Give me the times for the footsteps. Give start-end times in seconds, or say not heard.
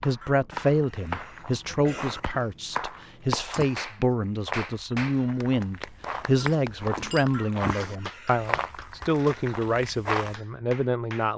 0.8-10.3.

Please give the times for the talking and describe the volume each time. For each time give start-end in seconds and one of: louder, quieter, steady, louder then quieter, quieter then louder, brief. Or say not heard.
0.0-11.3 steady.